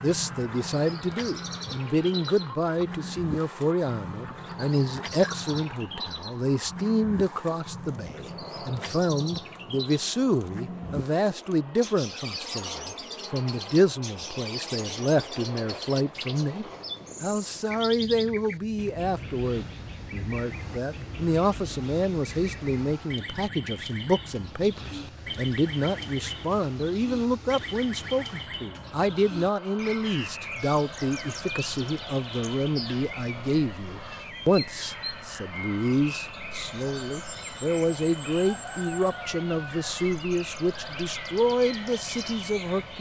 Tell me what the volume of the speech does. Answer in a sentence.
The loudness of the speech stays about the same.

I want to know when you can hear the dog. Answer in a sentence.
The dog can't be heard in this clip.